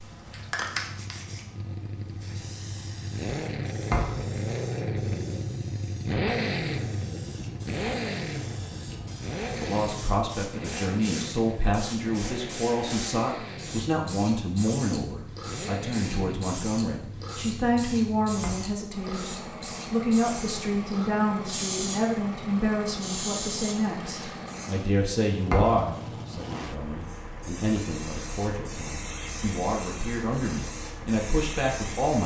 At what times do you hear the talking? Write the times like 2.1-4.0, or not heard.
9.6-32.2.